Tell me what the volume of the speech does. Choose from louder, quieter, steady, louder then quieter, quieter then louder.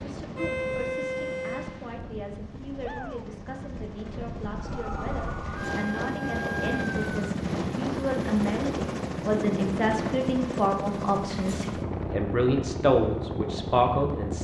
louder.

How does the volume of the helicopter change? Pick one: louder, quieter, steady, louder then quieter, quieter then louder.
louder.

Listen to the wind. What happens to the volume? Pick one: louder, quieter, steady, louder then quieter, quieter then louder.
louder.